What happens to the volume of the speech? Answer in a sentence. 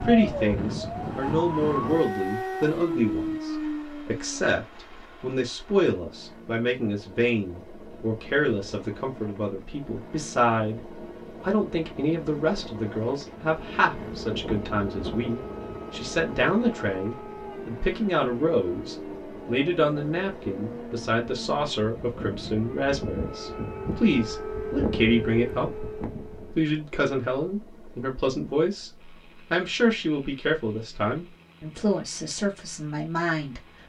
The loudness of the speech stays about the same.